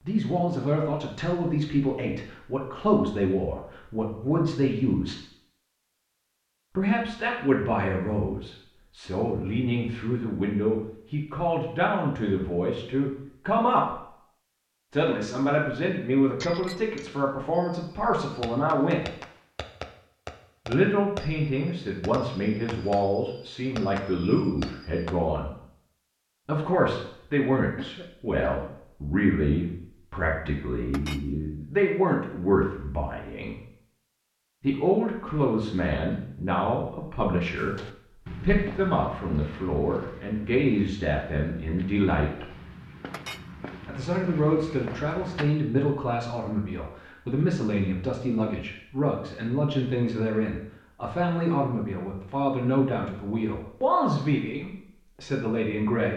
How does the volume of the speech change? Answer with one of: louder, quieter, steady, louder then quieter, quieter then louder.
steady.